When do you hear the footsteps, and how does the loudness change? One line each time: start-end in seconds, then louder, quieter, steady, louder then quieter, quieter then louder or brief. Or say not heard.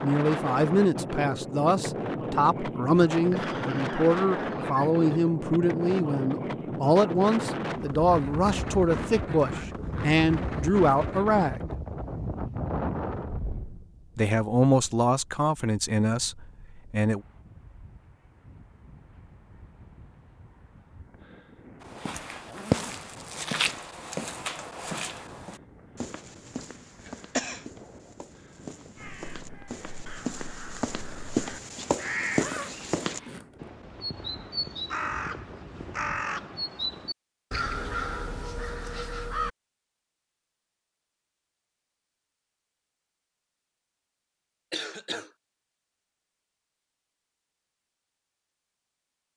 21.8-33.2 quieter then louder.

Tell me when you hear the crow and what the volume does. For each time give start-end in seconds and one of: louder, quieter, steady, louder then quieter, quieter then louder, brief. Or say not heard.
28.9-39.5 louder.